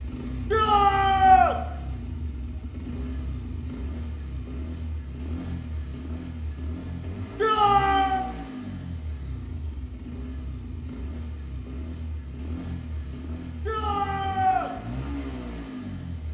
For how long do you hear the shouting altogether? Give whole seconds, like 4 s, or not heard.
3 s.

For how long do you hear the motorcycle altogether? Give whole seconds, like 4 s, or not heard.
16 s.